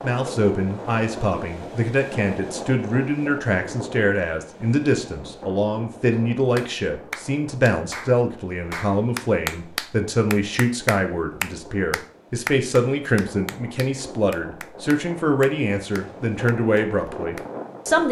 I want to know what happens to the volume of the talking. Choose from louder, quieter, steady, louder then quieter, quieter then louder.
steady.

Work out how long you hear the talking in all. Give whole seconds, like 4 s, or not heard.
18 s.